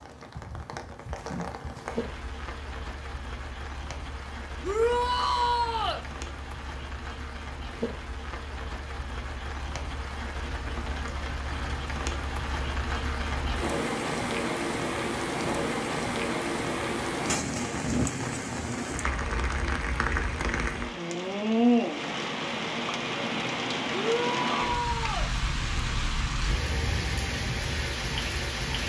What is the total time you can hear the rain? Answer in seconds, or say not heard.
29 s.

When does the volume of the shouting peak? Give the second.
5 s.